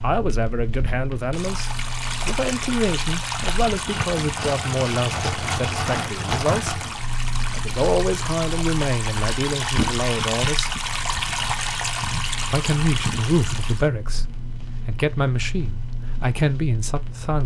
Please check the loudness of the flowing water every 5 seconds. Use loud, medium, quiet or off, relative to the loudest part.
loud, loud, loud, off.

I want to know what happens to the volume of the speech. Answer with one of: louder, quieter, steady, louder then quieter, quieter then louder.
steady.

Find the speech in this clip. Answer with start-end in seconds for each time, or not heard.
0.0-10.7, 12.5-17.4.